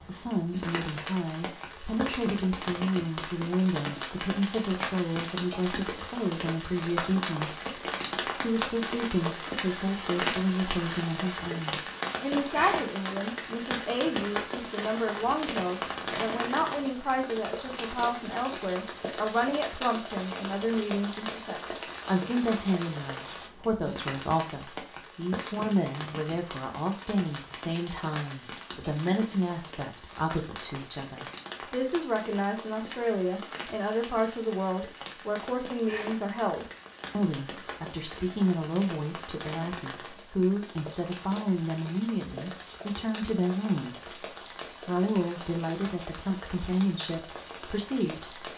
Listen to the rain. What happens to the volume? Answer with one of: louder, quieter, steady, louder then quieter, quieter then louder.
quieter.